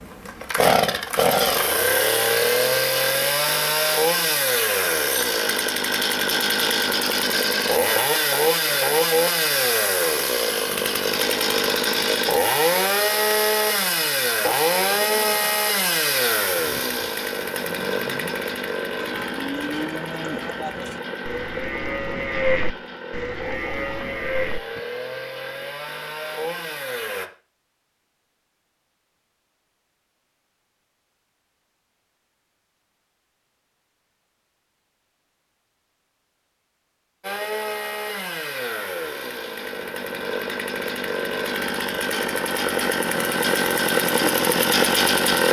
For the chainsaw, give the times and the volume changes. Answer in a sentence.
You can hear the chainsaw from 0.0 to 27.3 s, getting quieter; and from 37.2 to 45.4 s, getting louder.